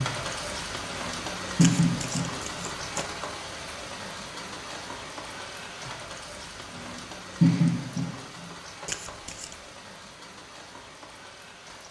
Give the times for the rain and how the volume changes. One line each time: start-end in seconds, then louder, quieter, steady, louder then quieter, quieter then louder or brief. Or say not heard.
0.0-11.8 quieter.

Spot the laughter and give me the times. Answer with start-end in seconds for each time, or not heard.
0.9-2.6, 6.7-8.2.